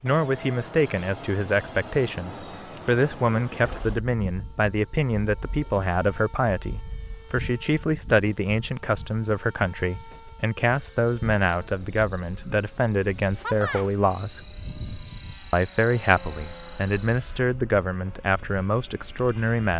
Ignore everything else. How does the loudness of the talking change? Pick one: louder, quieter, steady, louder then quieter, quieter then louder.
steady.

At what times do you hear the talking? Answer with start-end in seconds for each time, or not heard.
0.0-14.4, 15.5-19.7.